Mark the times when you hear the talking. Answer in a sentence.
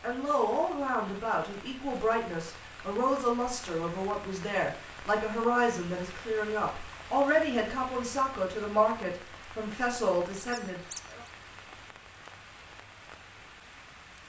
The talking can be heard from 0.0 to 11.2 s.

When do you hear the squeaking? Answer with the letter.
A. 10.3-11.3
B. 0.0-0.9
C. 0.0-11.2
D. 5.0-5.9
A.